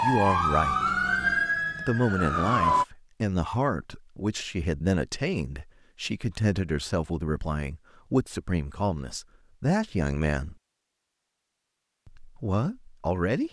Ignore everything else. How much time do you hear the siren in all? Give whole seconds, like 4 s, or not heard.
3 s.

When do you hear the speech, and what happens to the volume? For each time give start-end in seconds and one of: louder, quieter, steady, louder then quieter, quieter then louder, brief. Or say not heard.
0.0-0.9 brief
1.8-10.6 steady
12.1-13.4 brief.